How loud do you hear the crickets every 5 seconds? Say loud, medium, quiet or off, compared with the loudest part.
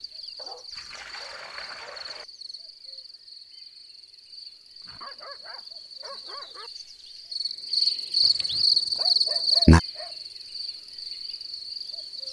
quiet, loud, quiet.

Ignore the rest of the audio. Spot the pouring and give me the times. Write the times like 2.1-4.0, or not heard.
0.7-2.2, 8.2-9.0.